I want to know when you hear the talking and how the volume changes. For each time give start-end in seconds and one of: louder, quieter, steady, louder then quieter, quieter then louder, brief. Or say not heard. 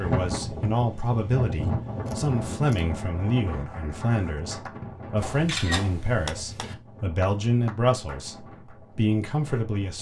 0.0-9.9 steady.